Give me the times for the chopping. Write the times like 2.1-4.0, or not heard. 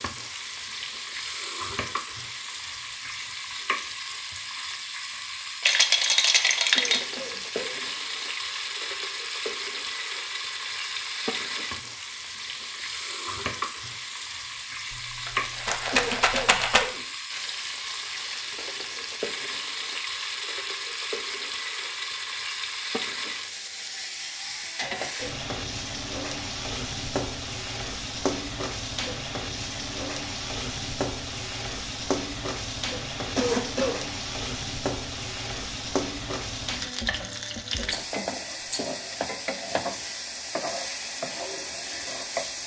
not heard.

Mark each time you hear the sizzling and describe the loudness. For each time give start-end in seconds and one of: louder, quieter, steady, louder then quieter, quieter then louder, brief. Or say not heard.
0.0-42.6 steady.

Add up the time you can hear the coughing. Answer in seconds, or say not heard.
3 s.